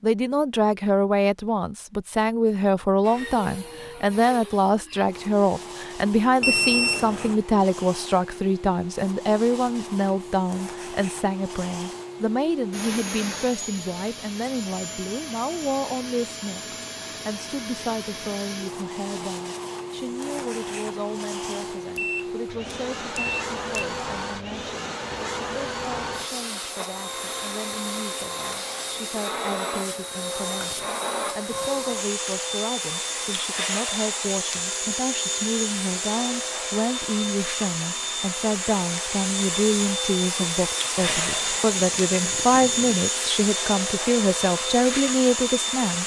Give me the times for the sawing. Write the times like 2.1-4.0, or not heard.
not heard.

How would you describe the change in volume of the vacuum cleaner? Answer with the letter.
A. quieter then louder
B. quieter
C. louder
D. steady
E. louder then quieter
C.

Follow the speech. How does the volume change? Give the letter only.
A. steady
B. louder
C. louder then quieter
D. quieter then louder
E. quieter
D.